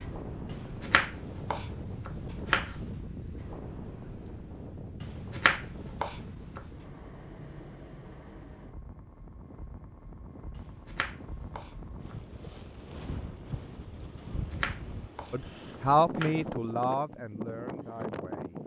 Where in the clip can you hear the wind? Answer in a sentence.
You can hear the wind from 0.0 to 18.6 s.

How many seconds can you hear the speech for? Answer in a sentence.
The speech can be heard for 3 seconds in total.